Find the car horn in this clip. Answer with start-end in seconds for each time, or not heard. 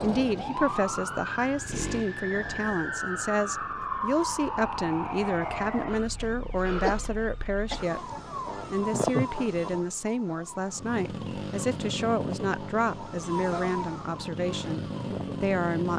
not heard.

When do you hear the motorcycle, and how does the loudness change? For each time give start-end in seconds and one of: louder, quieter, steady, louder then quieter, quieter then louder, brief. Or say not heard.
0.2-2.5 brief
10.7-15.9 quieter then louder.